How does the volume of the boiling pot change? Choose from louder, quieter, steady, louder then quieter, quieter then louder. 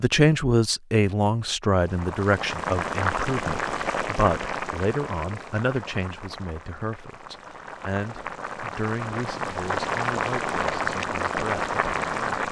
quieter then louder.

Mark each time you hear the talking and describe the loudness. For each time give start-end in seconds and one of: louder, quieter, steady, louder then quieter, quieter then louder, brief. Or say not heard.
0.0-12.4 quieter.